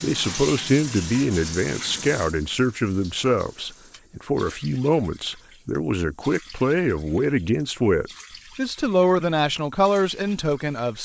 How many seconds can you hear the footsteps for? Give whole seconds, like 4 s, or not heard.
not heard.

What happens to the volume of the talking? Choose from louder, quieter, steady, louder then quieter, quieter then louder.
steady.